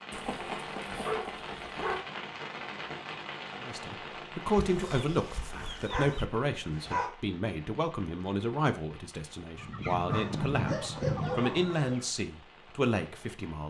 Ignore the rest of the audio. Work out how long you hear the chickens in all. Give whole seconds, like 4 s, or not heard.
6 s.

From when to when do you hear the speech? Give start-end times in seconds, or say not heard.
3.6-13.6.